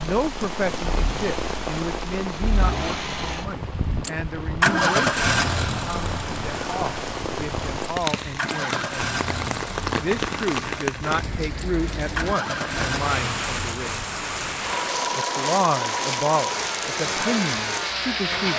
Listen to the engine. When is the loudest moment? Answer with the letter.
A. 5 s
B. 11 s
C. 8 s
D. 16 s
A.